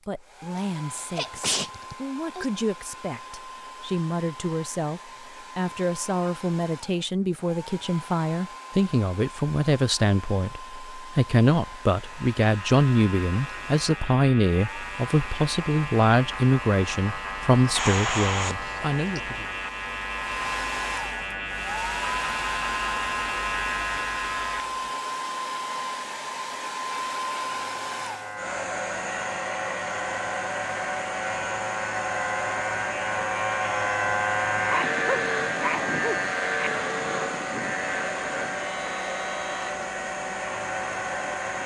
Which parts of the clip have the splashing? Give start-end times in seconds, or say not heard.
not heard.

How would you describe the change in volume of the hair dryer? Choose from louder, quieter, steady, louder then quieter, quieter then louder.
louder.